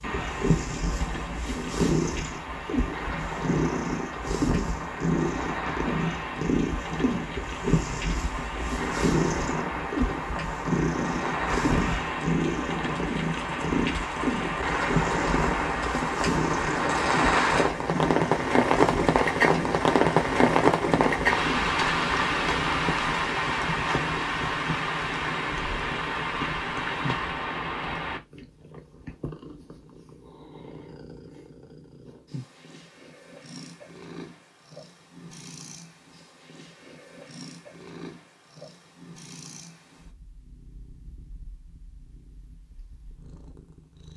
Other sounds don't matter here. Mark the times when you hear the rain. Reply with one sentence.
You can hear the rain from 0.0 to 28.2 s.